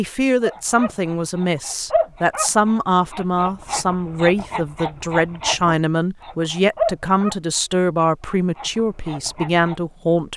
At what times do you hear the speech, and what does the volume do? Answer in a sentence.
You can hear the speech from 0.0 to 10.3 s, at a steady volume.